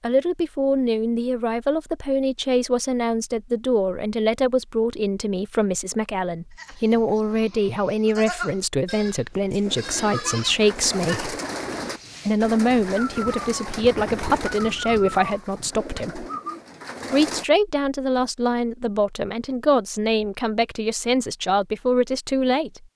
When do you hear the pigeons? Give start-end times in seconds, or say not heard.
9.7-17.4.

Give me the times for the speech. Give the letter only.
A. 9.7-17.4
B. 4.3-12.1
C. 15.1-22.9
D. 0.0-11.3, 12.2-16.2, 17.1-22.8
D.